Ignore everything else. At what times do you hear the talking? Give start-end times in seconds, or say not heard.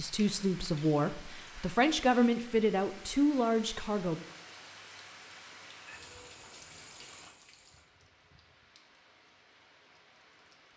0.0-4.2.